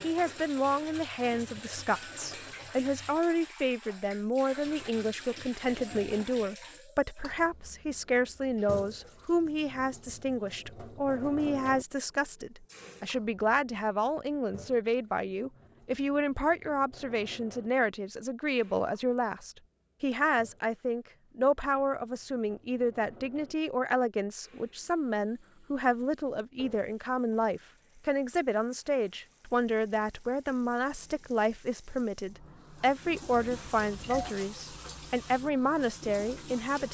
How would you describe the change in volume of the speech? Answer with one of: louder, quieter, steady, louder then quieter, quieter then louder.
steady.